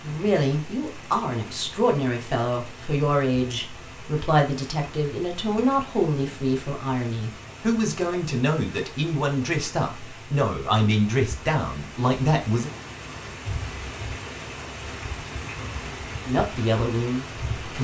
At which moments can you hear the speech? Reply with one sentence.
The speech can be heard from 0.0 to 12.7 s and from 16.2 to 17.7 s.